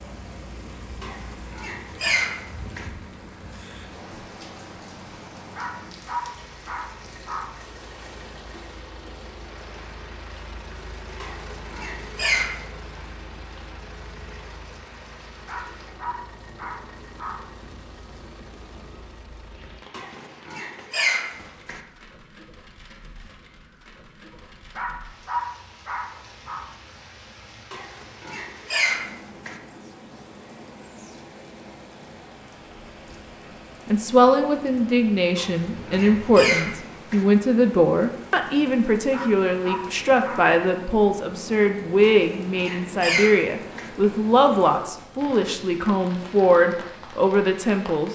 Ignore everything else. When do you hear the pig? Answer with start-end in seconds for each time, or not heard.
1.0-2.9, 11.2-12.6, 19.9-21.8, 27.7-29.6, 35.4-37.2, 42.0-43.9.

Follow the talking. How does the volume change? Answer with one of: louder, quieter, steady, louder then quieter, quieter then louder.
steady.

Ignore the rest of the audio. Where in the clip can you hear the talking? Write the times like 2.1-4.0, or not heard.
33.9-48.1.